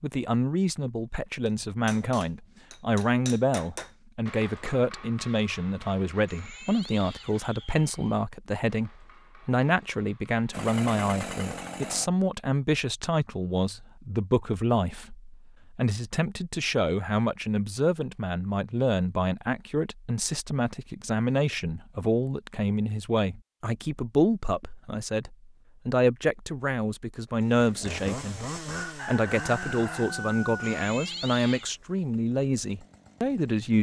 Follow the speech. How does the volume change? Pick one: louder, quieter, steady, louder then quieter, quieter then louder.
steady.